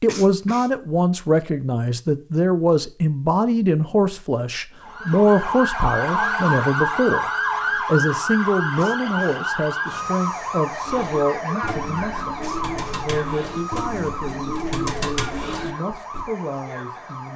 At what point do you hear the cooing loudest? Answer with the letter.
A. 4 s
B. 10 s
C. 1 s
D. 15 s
D.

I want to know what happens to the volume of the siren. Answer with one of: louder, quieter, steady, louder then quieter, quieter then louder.
quieter.